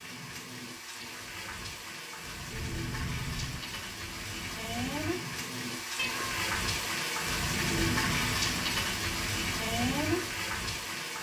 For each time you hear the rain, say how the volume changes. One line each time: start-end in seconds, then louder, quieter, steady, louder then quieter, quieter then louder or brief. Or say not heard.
0.0-11.1 louder.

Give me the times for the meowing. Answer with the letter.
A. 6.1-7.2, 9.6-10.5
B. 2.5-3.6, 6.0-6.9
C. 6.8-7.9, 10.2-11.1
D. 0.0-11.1
B.